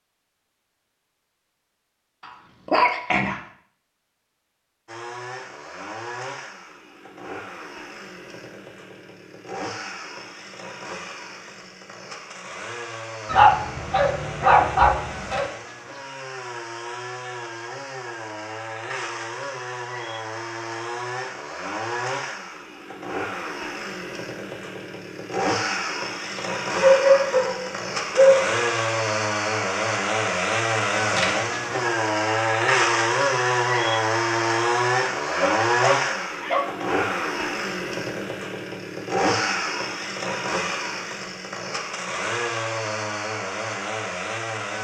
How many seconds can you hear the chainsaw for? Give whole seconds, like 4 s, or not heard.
40 s.